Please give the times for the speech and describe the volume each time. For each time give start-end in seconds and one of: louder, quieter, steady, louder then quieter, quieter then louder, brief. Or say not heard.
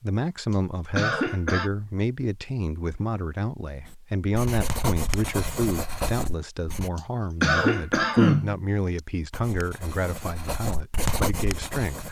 0.0-12.0 steady.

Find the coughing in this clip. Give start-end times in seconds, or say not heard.
0.5-1.7, 7.0-9.0.